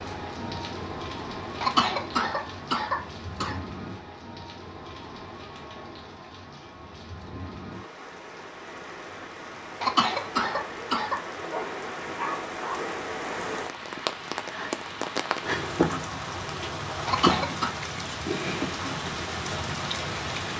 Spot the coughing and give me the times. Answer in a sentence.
You can hear the coughing from 1.6 to 3.6 s, from 9.8 to 11.2 s and from 17.1 to 17.8 s.